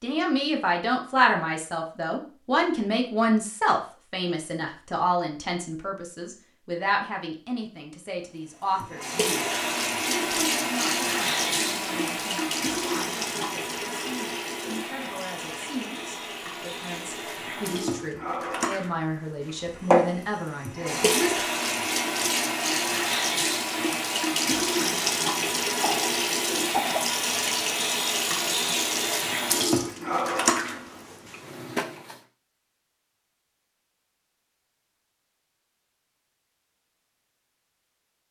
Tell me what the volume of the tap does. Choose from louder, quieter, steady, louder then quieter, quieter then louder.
quieter then louder.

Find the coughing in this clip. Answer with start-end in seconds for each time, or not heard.
25.8-27.1.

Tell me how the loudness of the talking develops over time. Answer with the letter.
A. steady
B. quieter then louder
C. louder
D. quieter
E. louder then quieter
B.